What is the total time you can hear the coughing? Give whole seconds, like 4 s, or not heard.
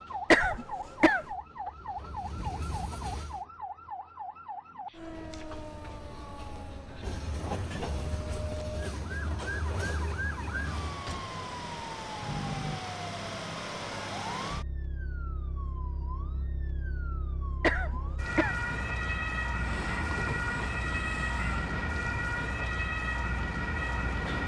2 s.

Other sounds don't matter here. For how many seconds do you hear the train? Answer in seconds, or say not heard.
14 s.